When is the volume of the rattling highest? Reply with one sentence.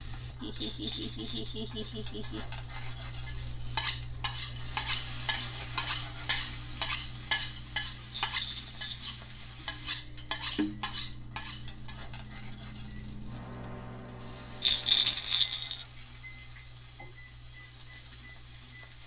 The loudest moment of the rattling is at 15 seconds.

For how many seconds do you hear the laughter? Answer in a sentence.
The laughter can be heard for 2 seconds in total.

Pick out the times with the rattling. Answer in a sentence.
You can hear the rattling from 0.6 to 1.8 s, from 8.1 to 9.2 s and from 14.6 to 15.8 s.